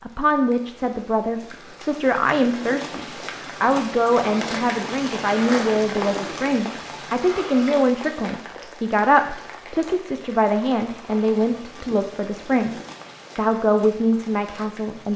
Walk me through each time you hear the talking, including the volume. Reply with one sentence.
The talking can be heard from 0.0 to 12.8 s, at a steady volume; and briefly from 13.3 to 15.1 s.